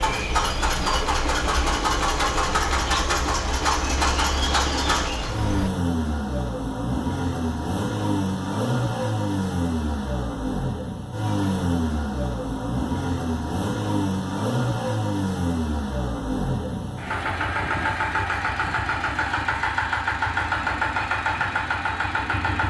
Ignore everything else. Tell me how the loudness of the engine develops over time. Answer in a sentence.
The loudness of the engine stays about the same.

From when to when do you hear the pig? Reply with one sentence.
The pig can't be heard in this clip.